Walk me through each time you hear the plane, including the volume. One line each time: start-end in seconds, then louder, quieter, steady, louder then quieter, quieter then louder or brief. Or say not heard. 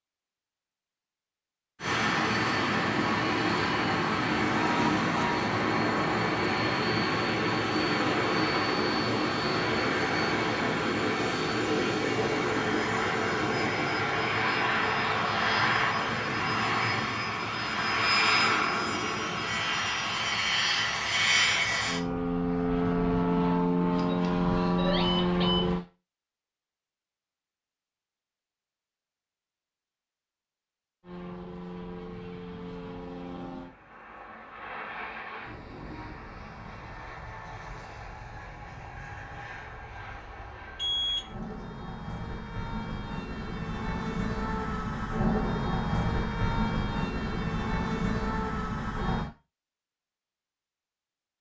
1.8-25.9 steady
31.0-49.3 louder.